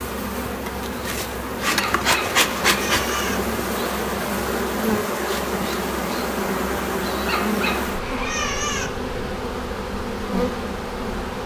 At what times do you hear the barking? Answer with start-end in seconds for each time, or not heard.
1.8-3.4, 7.2-8.9.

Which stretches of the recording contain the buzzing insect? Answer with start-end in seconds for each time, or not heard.
0.0-11.4.